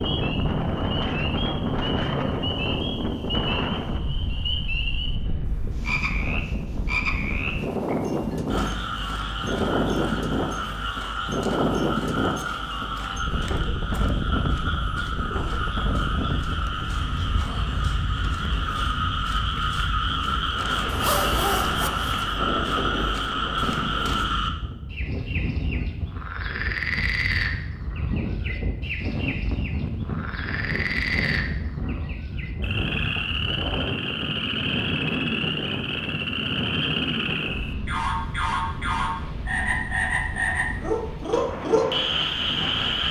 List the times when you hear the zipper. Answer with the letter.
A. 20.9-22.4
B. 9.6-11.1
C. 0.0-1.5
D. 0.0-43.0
A.